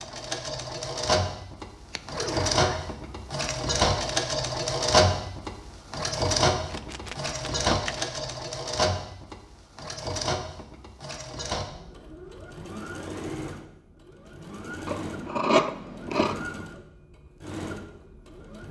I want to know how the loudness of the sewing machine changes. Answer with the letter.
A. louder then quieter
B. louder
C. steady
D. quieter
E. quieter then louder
D.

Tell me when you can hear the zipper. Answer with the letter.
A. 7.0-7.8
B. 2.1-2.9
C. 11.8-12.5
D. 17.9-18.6
B.